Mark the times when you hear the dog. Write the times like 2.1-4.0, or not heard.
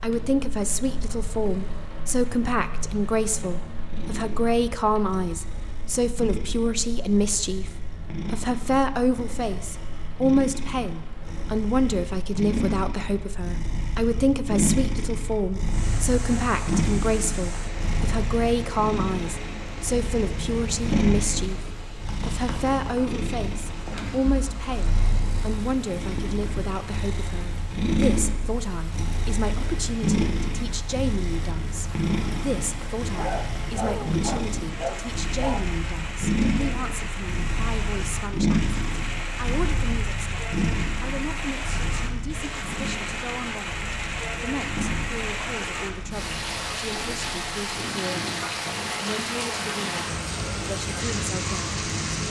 33.1-35.6.